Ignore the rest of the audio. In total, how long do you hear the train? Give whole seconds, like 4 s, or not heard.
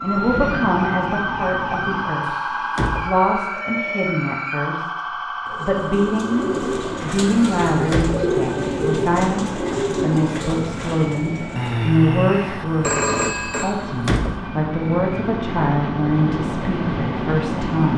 14 s.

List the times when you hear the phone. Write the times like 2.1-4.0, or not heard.
11.6-13.8.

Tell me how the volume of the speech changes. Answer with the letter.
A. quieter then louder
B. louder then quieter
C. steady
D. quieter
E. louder
C.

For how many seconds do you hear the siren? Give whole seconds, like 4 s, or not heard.
18 s.